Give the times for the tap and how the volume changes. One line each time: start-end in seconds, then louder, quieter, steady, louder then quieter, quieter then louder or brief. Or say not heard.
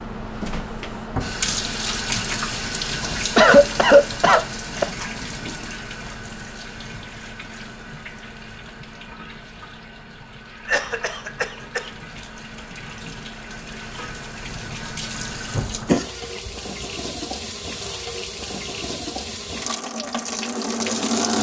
0.0-21.3 quieter then louder.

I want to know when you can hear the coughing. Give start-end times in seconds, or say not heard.
3.4-4.8, 10.7-11.9, 15.6-16.9.